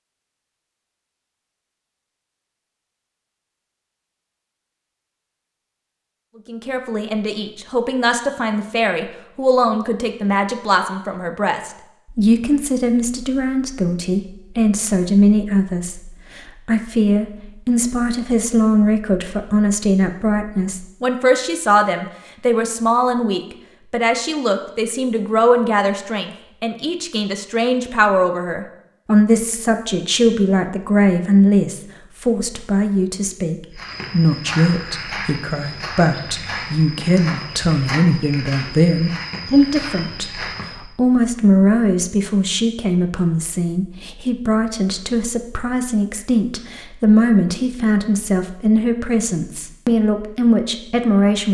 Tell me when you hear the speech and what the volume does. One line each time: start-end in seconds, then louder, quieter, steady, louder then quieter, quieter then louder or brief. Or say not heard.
6.5-51.5 steady.